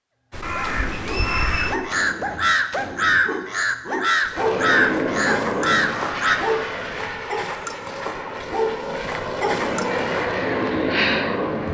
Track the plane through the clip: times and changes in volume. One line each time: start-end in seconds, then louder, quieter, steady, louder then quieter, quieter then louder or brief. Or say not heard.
4.3-11.7 quieter then louder.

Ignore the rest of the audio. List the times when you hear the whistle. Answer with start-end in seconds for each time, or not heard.
0.9-1.8.